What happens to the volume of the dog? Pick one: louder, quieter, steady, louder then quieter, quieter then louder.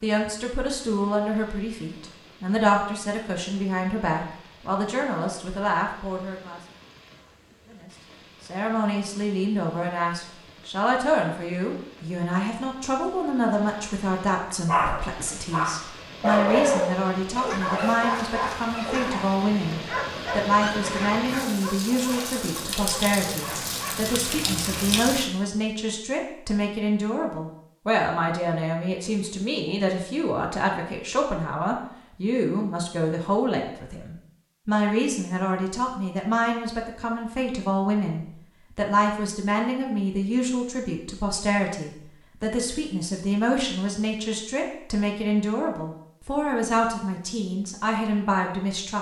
quieter.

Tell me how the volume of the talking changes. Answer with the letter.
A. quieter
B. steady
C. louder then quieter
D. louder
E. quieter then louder
B.